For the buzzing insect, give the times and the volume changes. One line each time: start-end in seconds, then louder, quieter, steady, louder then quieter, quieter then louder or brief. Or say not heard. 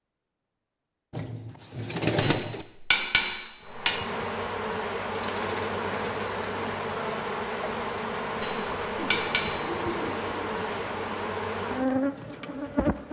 3.6-13.0 steady.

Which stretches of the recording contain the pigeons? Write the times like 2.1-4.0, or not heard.
1.1-2.6, 5.1-6.8, 8.9-11.3.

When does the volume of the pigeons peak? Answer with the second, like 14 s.
2 s.